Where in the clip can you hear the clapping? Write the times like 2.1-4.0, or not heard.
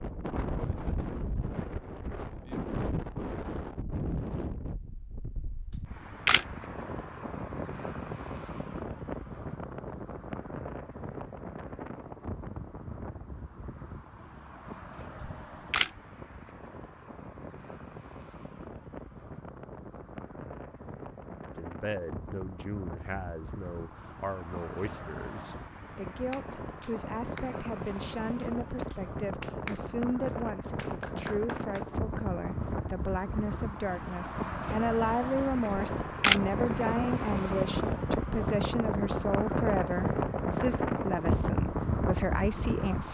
26.3-31.9.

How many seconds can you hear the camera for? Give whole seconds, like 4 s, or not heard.
2 s.